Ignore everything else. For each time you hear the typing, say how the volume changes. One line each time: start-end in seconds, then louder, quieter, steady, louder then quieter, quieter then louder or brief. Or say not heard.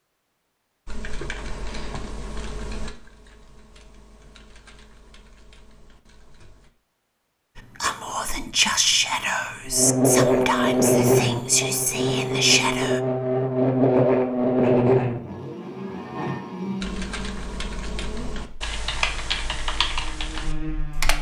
0.8-6.7 quieter
16.8-21.1 louder then quieter.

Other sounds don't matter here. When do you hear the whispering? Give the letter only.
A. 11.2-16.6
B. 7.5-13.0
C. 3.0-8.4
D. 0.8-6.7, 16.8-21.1
B.